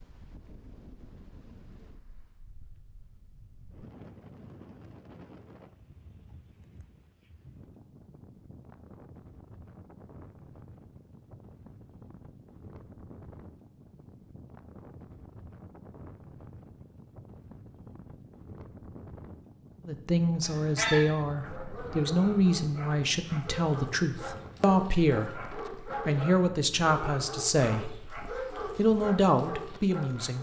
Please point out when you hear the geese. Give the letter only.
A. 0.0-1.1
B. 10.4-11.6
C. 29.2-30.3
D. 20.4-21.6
D.